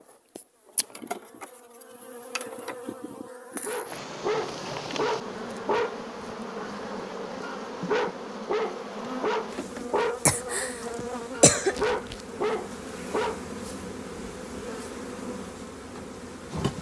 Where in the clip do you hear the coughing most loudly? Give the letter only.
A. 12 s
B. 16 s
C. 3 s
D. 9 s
A.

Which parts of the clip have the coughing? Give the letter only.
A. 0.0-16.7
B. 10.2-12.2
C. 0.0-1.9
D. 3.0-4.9
B.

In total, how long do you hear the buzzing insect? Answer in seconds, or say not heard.
17 s.